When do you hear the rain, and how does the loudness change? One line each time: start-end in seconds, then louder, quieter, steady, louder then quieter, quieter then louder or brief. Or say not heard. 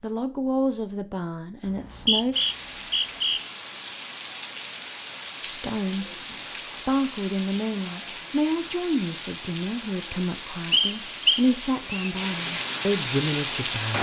2.3-13.9 louder.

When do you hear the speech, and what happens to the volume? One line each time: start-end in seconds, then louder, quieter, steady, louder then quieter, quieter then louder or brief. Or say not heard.
0.0-2.4 brief
5.4-13.9 steady.